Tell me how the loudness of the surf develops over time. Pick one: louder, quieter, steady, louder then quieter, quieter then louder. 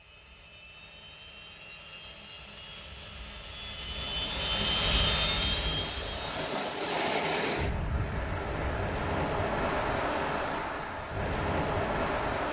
louder.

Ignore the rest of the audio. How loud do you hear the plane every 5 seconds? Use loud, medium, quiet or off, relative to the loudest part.
medium, loud, off.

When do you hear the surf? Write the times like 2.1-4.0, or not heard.
3.9-12.4.